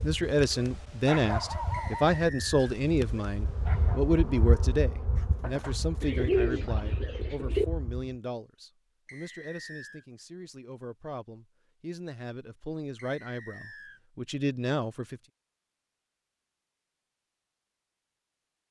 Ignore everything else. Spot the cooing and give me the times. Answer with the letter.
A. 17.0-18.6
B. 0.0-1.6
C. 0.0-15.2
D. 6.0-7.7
D.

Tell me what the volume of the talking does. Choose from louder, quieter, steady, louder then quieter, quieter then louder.
quieter then louder.